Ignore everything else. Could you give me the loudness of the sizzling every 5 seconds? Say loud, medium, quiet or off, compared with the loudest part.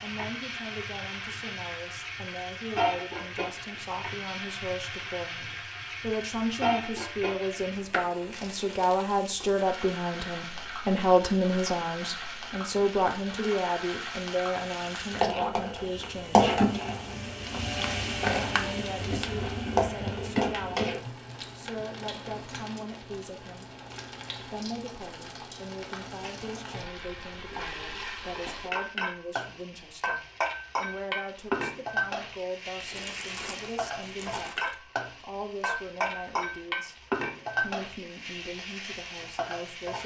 medium, medium, medium, loud, medium, medium, medium, medium.